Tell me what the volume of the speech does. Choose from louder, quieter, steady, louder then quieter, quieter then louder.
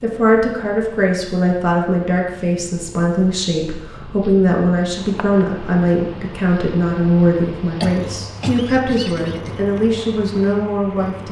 steady.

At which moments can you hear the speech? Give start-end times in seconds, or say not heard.
0.0-11.2.